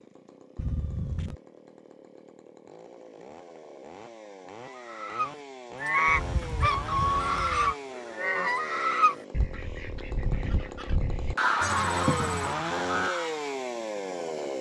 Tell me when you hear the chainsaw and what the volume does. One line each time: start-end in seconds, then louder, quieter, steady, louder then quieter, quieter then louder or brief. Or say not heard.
0.0-14.5 louder.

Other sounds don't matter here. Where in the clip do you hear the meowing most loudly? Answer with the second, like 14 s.
12 s.